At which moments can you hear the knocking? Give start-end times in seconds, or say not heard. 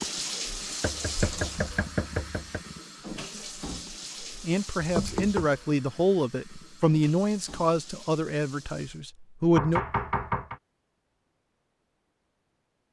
0.8-2.6, 4.8-5.5, 9.6-10.6.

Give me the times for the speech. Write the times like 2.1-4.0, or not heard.
4.3-9.8.